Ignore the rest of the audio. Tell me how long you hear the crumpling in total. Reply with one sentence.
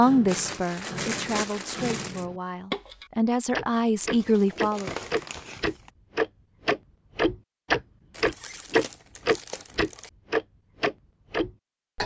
The crumpling can be heard for 6 seconds in total.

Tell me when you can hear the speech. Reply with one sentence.
The speech can be heard from 0.0 to 4.9 s.